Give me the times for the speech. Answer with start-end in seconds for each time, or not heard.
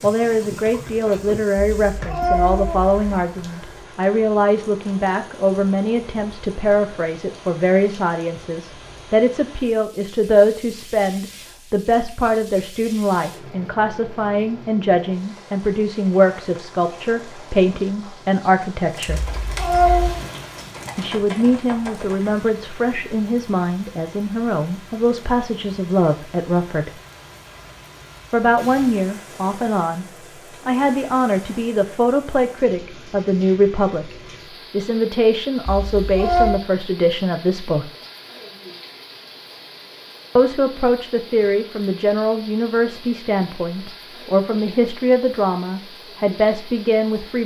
0.0-19.3, 20.9-27.0, 28.3-30.1, 30.6-37.9, 40.4-47.4.